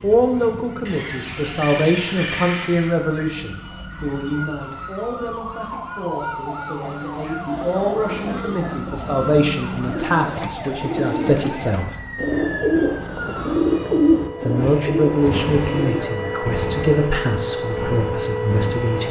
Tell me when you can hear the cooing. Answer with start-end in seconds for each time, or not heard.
7.5-16.1.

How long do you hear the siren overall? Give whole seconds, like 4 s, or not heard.
19 s.